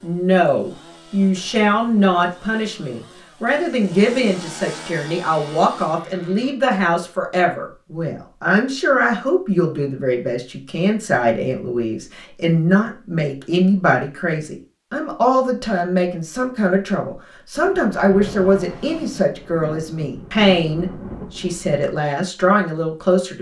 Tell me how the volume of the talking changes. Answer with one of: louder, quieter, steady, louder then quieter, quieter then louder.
steady.